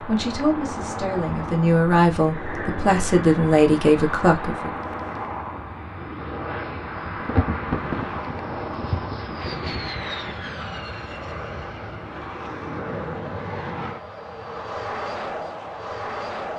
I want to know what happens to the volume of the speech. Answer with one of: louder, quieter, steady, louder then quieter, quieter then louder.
louder.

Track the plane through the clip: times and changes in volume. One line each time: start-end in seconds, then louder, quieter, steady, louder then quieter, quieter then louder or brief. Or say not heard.
0.0-16.5 steady.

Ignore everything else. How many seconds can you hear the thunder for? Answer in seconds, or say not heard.
3 s.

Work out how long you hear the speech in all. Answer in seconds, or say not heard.
5 s.